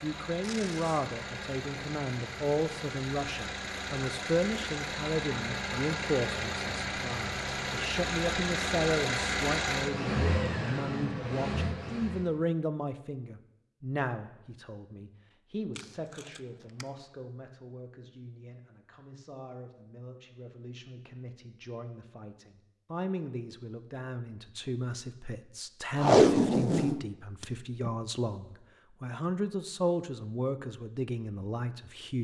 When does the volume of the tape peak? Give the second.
26 s.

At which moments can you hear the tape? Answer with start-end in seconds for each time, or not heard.
0.4-1.1, 15.8-16.9, 25.9-27.9.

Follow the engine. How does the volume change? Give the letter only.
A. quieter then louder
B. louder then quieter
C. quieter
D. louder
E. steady
D.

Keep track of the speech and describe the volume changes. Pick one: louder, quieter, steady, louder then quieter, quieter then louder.
quieter then louder.